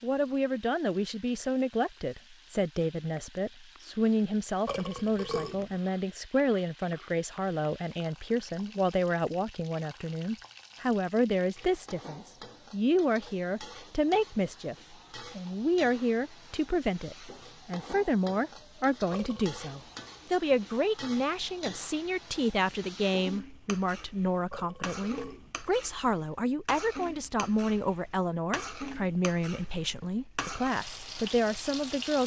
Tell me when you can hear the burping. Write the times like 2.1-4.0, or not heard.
4.7-5.8, 19.1-19.6, 24.5-25.6.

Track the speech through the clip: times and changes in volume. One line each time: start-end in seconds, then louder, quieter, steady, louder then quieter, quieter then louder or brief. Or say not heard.
0.0-32.2 steady.